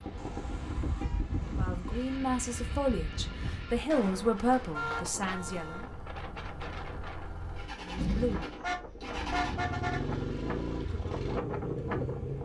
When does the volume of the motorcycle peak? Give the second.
10 s.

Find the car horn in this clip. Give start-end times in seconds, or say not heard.
0.1-2.1, 4.7-6.0, 8.6-10.0.